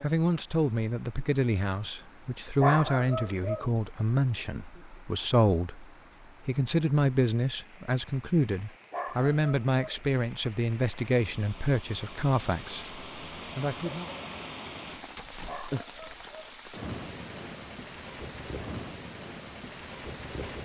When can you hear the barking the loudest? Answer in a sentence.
The volume of the barking peaks at 3 seconds.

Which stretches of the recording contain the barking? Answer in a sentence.
You can hear the barking from 2.6 to 3.7 s, from 8.9 to 10.0 s and from 15.4 to 16.6 s.